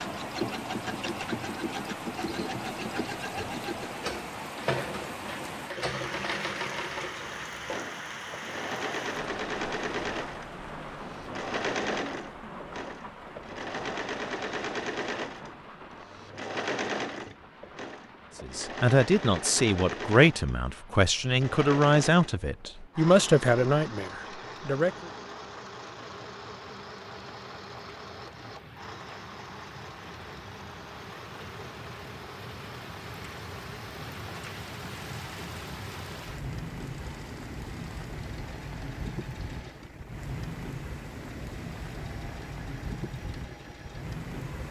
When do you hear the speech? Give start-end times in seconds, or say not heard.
18.4-24.9.